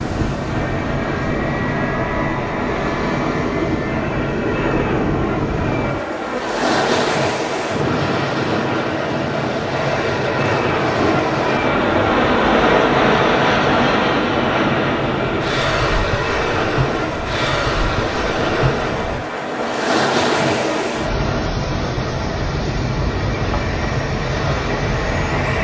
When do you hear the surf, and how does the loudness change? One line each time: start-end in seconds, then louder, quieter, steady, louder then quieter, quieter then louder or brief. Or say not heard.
0.0-25.5 steady.